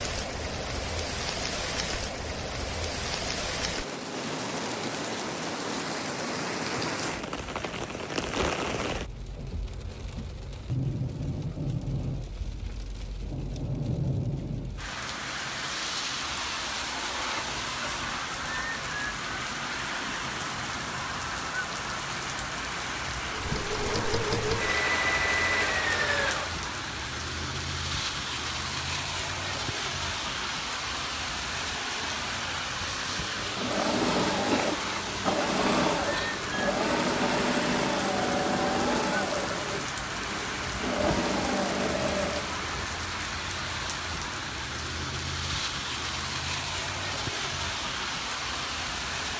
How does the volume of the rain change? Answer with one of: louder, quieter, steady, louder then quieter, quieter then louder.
steady.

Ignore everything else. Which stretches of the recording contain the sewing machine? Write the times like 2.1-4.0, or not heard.
23.3-26.6, 32.9-43.0.